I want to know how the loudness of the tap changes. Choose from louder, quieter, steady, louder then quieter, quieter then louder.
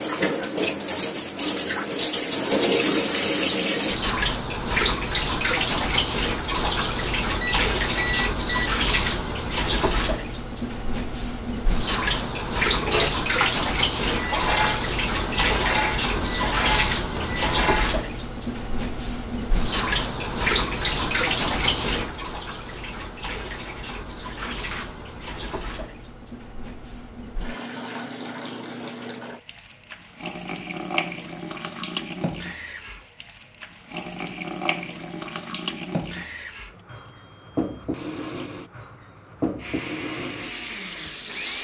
quieter.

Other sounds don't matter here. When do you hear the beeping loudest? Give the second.
8 s.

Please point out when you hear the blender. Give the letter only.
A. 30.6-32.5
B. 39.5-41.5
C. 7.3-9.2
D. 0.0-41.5
B.